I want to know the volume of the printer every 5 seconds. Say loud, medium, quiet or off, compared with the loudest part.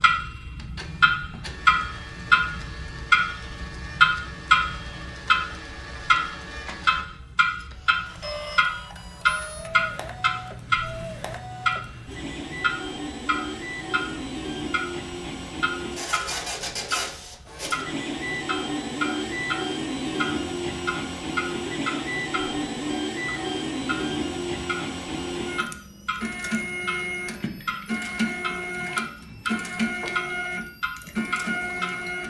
quiet, medium, medium, loud, loud, loud, loud.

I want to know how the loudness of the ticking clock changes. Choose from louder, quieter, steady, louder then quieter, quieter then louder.
quieter.